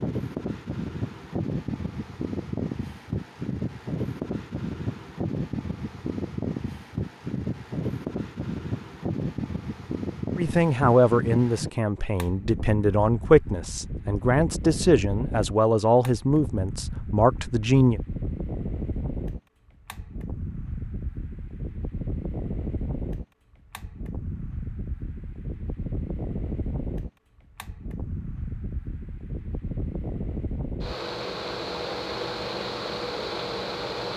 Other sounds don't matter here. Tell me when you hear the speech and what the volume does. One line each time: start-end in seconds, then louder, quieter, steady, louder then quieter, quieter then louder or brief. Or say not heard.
10.3-18.0 steady.